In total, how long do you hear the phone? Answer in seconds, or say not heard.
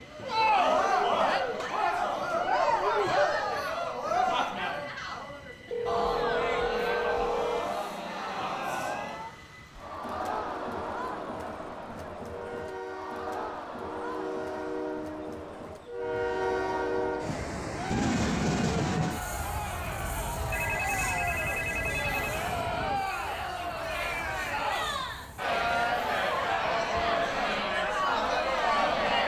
4 s.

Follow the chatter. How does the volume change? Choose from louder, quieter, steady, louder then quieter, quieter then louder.
quieter then louder.